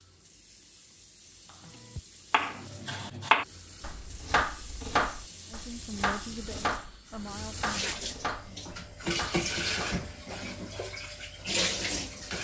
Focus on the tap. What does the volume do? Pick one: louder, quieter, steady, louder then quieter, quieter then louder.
louder.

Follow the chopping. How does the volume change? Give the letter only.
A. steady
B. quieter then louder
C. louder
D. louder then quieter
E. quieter
E.